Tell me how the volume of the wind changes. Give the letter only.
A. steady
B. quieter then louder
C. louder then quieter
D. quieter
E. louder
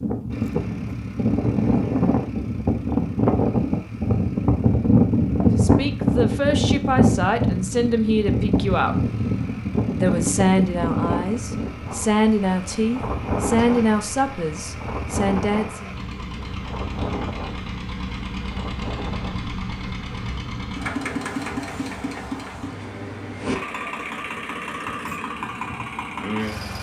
D.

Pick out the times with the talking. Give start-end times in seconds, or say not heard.
5.5-9.1, 10.0-15.9.